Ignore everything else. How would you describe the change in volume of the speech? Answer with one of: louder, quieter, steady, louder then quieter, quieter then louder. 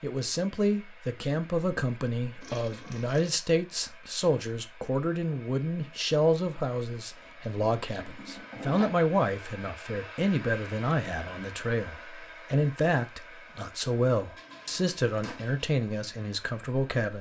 steady.